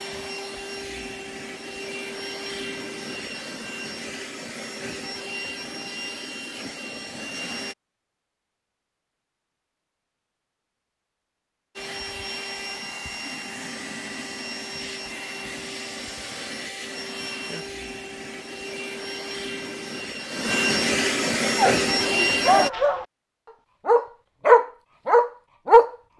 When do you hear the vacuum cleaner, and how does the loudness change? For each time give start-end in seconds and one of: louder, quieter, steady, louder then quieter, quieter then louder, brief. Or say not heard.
0.0-7.8 steady
11.8-22.7 louder.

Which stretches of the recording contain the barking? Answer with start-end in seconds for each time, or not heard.
21.6-23.1, 23.9-25.9.